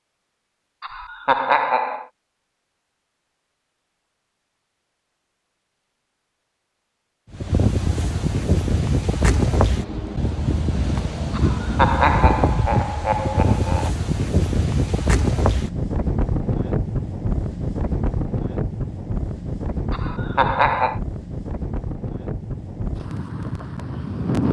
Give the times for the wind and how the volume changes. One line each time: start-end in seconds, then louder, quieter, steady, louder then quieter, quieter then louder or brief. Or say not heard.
7.3-24.4 quieter.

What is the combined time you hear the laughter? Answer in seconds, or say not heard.
5 s.